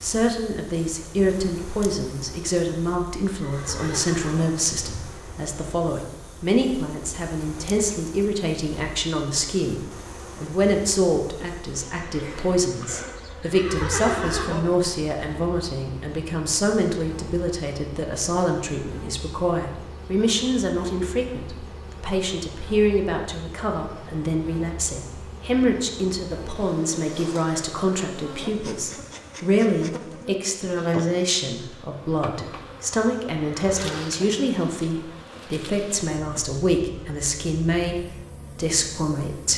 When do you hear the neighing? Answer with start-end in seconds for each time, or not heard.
3.3-4.5, 13.4-14.6, 33.3-34.0.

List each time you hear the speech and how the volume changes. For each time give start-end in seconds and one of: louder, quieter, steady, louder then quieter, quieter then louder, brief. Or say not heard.
0.0-39.5 steady.